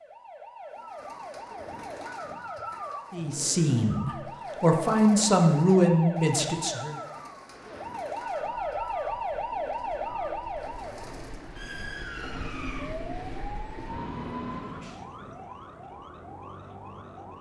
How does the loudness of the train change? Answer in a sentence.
The loudness of the train goes up.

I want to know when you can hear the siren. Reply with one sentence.
You can hear the siren from 0.0 to 17.3 s.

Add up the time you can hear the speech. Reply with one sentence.
The speech can be heard for 4 seconds in total.